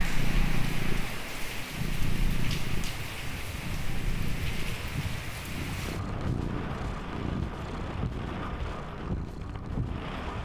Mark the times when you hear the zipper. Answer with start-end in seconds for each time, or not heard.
not heard.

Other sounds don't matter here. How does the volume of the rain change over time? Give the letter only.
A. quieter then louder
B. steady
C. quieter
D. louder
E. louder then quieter
B.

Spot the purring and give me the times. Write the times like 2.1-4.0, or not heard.
0.0-10.2.